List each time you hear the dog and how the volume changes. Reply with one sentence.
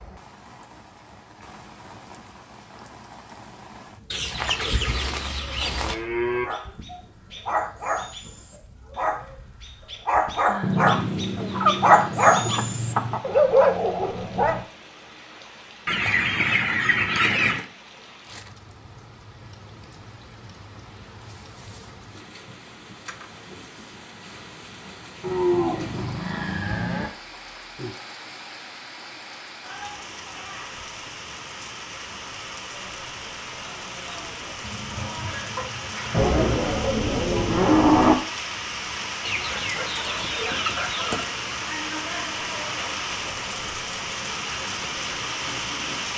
You can hear the dog from 6.5 to 14.6 s, getting louder.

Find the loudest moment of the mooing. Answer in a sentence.
The volume of the mooing peaks at 38 seconds.